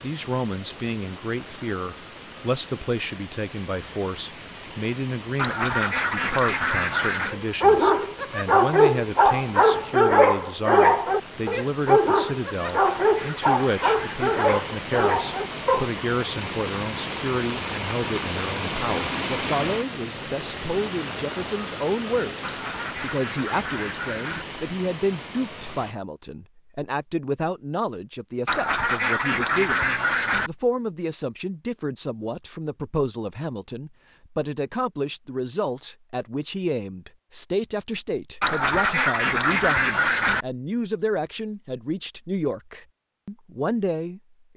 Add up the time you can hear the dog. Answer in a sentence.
The dog can be heard for 9 seconds in total.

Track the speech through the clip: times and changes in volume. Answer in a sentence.
You can hear the speech from 0.0 to 44.5 s, at a steady volume.